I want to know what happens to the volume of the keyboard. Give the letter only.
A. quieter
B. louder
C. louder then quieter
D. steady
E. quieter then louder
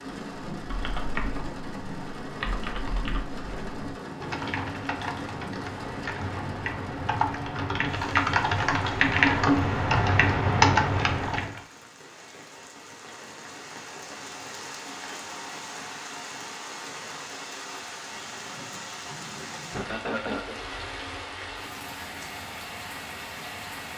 B.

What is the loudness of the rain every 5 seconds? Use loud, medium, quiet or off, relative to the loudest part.
loud, loud, medium, loud, loud.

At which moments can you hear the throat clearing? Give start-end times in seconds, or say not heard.
19.7-20.6.